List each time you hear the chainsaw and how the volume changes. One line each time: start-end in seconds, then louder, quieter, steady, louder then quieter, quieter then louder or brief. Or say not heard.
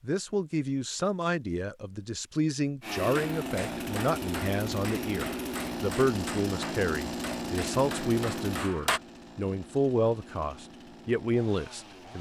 2.8-12.1 quieter.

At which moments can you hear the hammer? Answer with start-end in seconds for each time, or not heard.
3.1-9.0.